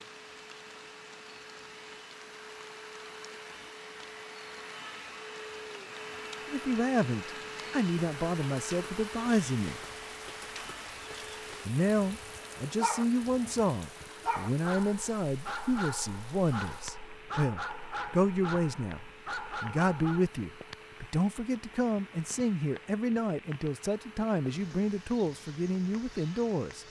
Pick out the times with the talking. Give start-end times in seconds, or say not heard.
6.5-9.8, 11.7-26.8.